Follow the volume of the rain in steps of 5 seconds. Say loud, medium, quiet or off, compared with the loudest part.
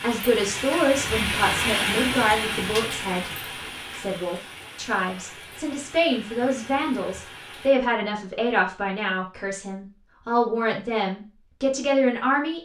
loud, quiet, off.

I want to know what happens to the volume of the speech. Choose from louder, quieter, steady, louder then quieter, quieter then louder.
steady.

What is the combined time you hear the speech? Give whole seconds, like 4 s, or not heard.
12 s.